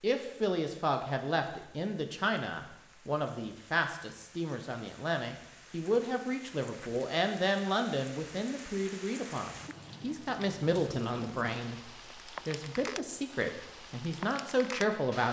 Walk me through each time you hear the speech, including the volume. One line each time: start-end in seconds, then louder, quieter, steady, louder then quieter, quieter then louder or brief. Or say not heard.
0.0-11.8 steady
12.4-15.2 brief.